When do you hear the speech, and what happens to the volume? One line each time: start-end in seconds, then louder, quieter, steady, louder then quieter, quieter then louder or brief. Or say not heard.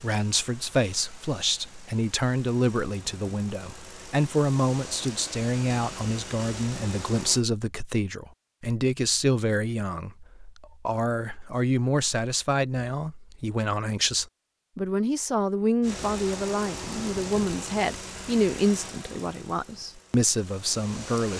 0.0-21.3 steady.